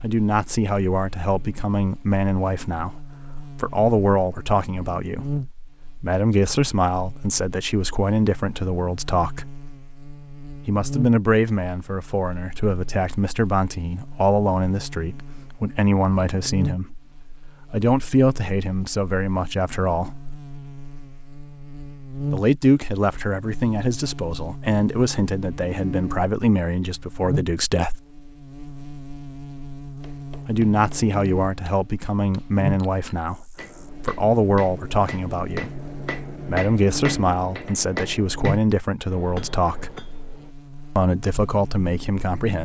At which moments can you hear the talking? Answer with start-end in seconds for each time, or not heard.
0.0-9.5, 10.7-20.3, 22.3-28.0, 30.4-40.0, 41.0-42.6.